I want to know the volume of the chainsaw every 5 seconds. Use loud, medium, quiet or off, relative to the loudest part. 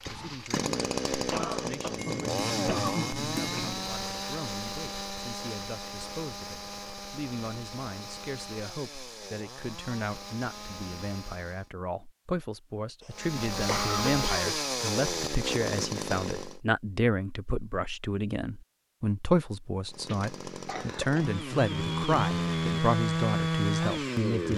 loud, medium, loud, loud, loud.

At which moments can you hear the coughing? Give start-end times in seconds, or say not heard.
1.3-3.7, 13.0-14.6, 20.1-21.4.